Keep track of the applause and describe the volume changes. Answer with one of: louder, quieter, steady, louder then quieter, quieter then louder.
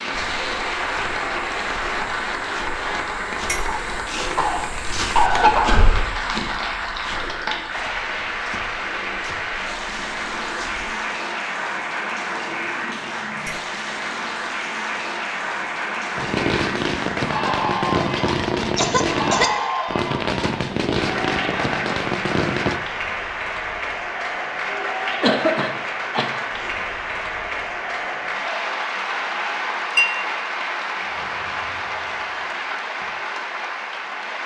steady.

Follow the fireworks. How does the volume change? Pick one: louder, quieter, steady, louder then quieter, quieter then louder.
steady.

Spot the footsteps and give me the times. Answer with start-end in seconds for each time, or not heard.
0.3-10.9.